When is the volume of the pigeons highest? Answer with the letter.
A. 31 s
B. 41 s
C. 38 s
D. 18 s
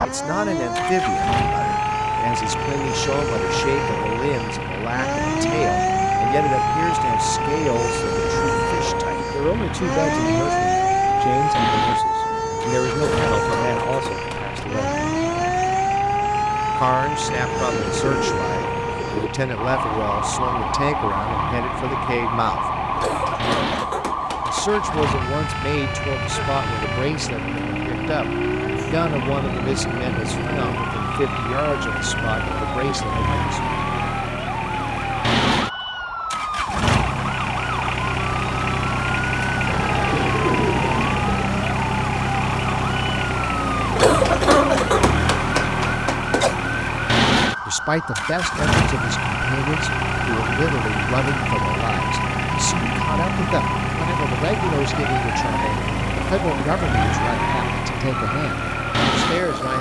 B.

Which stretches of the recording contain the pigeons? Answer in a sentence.
You can hear the pigeons from 17.2 to 19.3 s and from 39.6 to 41.4 s.